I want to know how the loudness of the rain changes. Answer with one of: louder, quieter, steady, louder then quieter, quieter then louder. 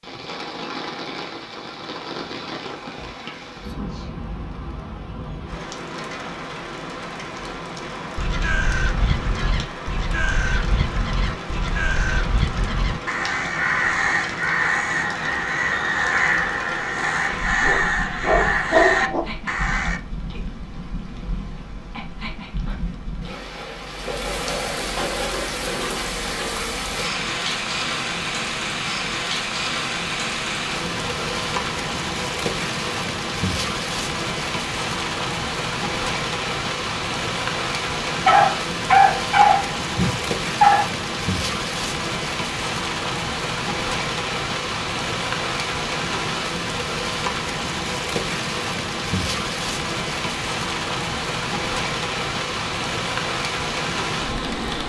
louder.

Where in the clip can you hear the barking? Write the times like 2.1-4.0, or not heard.
17.6-19.2, 38.2-40.9.